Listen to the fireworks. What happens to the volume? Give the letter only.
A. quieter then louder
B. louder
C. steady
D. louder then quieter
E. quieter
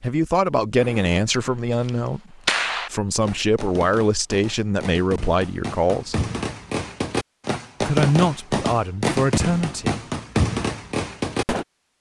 A.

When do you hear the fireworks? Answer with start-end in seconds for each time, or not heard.
0.8-11.7.